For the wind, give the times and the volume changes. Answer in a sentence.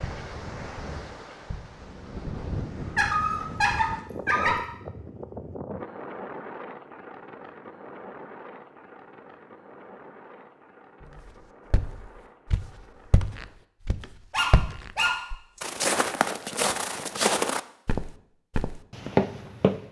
You can hear the wind from 0.0 to 13.6 s, getting quieter.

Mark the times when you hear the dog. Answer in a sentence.
The dog can be heard from 3.0 to 4.6 s and from 14.3 to 15.6 s.